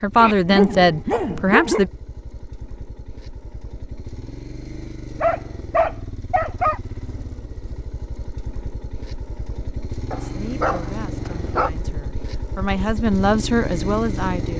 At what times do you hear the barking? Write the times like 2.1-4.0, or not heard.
0.1-1.9, 5.2-6.8, 10.1-11.7.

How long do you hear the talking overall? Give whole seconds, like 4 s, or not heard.
6 s.